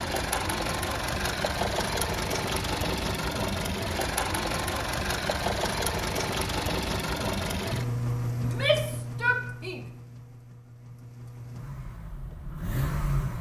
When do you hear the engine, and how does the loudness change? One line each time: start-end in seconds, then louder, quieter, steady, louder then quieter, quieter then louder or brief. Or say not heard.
0.0-13.3 quieter.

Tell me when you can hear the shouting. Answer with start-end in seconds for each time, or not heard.
8.4-9.8.